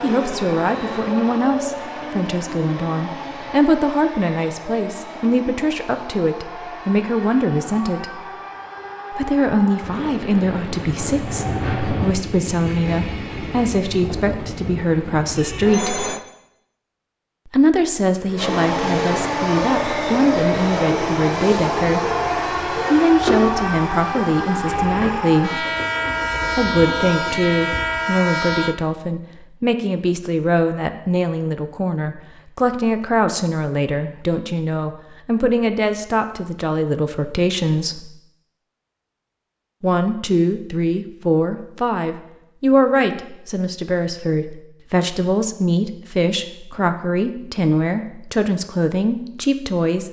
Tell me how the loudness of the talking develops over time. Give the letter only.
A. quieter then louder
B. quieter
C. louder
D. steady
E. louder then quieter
D.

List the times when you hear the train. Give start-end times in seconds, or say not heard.
0.0-16.2, 18.4-28.8.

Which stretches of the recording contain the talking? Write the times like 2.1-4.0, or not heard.
0.0-8.3, 9.1-16.1, 17.4-25.6, 26.6-38.1, 39.8-50.0.